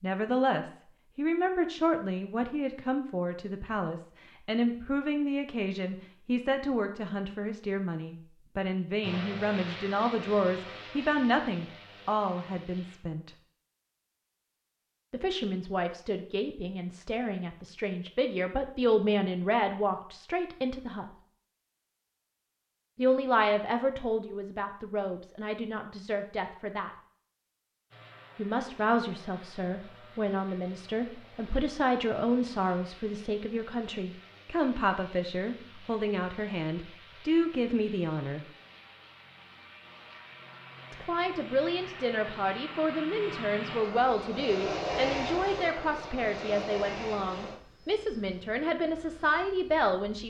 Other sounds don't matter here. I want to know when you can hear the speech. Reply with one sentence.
You can hear the speech from 0.0 to 13.3 s, from 15.1 to 21.1 s, from 22.9 to 26.9 s, from 28.4 to 38.5 s and from 40.9 to 50.2 s.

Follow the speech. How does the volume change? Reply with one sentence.
The volume of the speech stays about the same.